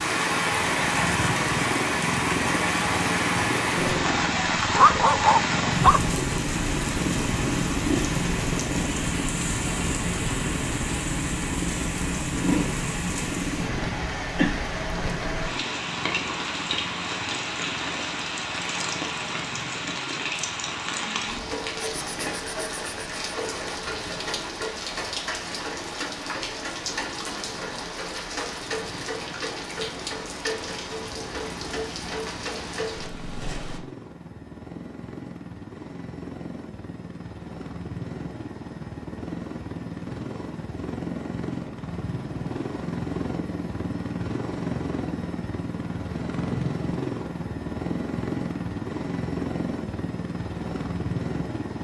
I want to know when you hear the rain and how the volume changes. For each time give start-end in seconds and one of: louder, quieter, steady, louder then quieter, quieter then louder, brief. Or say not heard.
0.0-33.8 quieter.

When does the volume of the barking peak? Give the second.
5 s.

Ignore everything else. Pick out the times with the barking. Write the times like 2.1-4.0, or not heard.
3.8-6.0.